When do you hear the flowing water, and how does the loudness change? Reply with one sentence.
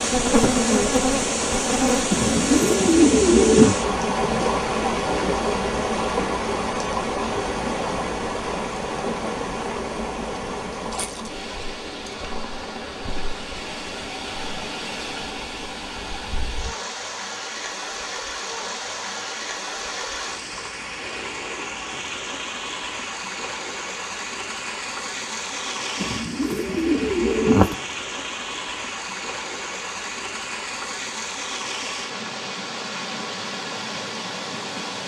You can hear the flowing water from 0.0 to 35.0 s, getting quieter.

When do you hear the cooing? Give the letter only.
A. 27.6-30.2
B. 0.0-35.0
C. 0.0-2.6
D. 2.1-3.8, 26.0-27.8
D.